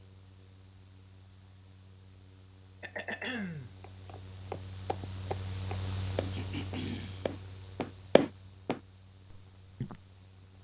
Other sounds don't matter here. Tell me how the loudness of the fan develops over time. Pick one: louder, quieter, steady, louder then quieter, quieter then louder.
louder then quieter.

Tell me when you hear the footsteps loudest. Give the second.
8 s.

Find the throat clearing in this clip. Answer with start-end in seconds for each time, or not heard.
2.8-3.7, 6.3-7.2.